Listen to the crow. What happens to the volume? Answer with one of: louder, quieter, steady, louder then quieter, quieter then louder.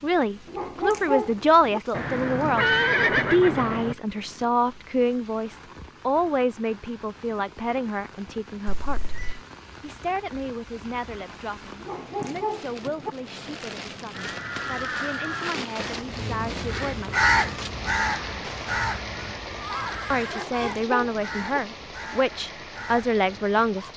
louder then quieter.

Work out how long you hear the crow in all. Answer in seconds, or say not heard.
10 s.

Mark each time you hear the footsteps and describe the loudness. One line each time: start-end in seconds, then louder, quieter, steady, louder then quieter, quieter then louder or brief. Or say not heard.
not heard.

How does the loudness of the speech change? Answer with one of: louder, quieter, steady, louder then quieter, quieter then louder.
quieter then louder.